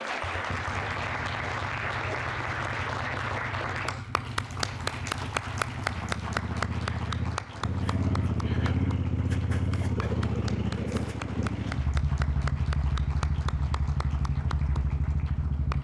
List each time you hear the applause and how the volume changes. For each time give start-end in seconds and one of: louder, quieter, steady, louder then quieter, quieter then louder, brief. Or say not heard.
0.0-15.8 quieter.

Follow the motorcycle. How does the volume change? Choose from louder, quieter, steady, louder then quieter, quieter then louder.
louder.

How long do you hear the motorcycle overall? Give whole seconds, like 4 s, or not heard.
16 s.